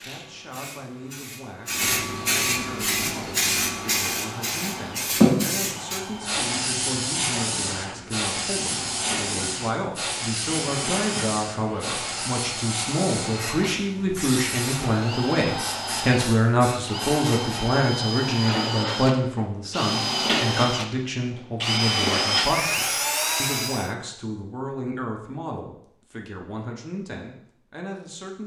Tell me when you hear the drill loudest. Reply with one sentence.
The loudest moment of the drill is at 22 seconds.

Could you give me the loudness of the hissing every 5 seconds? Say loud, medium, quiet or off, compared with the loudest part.
loud, loud, medium, medium, off, off.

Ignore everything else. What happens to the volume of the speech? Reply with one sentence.
The loudness of the speech goes up, then down.